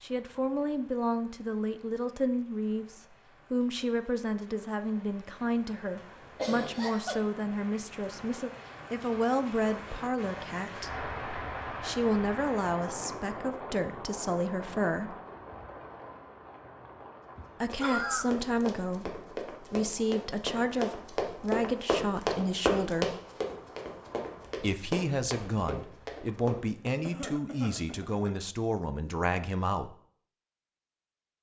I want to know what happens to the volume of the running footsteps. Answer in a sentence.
The loudness of the running footsteps goes up, then down.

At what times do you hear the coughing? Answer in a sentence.
The coughing can be heard from 6.3 to 7.2 s, from 17.4 to 18.3 s and from 27.0 to 28.8 s.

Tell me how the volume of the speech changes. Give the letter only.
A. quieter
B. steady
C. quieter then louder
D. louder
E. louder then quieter
B.